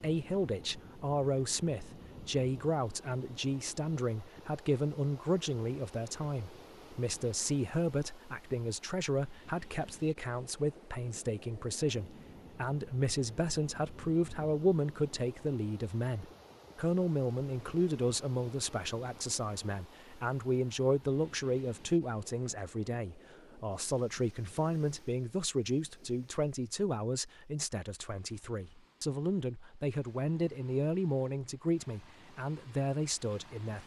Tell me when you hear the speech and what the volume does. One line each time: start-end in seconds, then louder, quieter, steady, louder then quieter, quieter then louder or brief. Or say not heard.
0.0-33.8 steady.